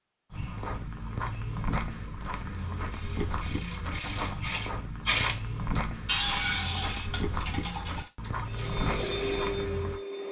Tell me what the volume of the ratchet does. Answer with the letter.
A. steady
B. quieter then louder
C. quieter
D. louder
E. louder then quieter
E.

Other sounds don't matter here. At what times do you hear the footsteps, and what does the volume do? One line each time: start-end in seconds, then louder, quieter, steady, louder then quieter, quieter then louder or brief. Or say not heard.
0.3-10.0 steady.